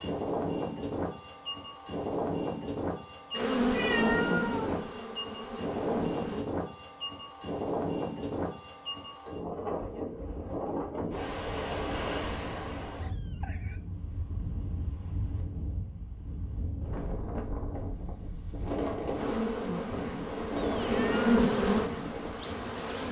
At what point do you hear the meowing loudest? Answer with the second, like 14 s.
4 s.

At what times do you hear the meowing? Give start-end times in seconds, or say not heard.
3.4-5.0, 12.9-13.8, 20.6-21.3.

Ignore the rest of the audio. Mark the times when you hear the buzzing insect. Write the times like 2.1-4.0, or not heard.
3.4-6.5, 19.1-23.0.